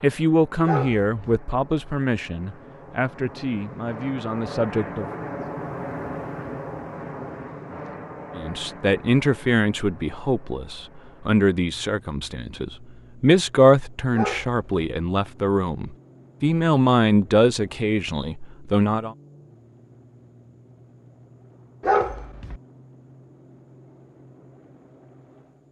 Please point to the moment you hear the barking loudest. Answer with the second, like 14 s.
22 s.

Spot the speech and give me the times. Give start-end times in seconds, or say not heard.
0.0-5.0, 8.3-19.1.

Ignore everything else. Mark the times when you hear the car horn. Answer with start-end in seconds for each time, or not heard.
not heard.